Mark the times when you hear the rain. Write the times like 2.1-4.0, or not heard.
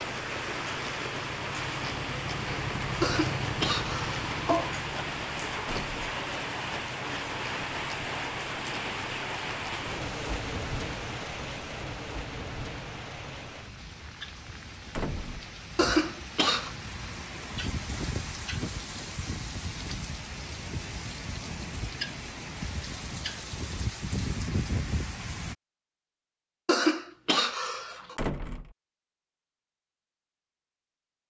0.0-25.6.